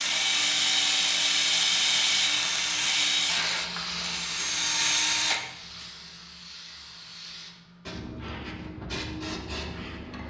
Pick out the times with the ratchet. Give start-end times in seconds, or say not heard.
not heard.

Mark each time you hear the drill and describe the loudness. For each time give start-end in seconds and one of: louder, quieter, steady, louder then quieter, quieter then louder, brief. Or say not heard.
0.0-5.8 quieter then louder.